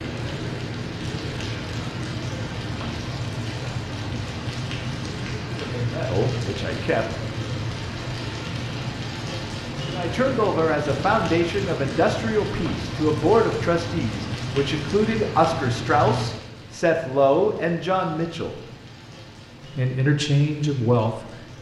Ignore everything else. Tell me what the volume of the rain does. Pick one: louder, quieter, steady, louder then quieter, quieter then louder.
quieter.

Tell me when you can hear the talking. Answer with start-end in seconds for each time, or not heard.
5.3-7.0, 9.9-18.6, 19.7-21.2.